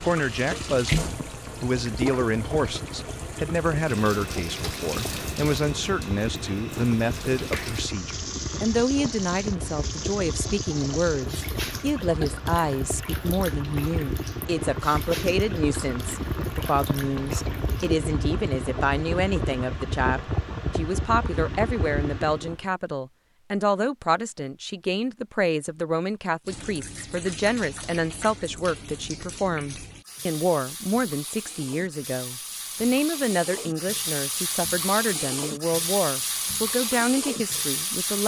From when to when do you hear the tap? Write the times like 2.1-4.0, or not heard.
0.0-17.9, 26.4-38.2.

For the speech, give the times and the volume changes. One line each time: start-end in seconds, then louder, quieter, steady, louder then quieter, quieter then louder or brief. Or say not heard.
0.0-38.2 steady.